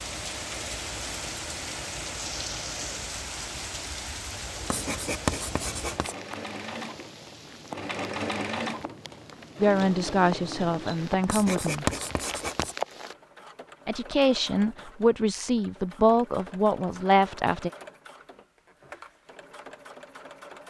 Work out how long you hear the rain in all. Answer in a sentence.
The rain can be heard for 13 seconds in total.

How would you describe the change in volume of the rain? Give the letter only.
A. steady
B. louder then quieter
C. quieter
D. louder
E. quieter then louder
E.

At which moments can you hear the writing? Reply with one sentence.
You can hear the writing from 4.7 to 6.2 s and from 11.2 to 12.8 s.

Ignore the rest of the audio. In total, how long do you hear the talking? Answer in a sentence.
You can hear the talking for 6 seconds altogether.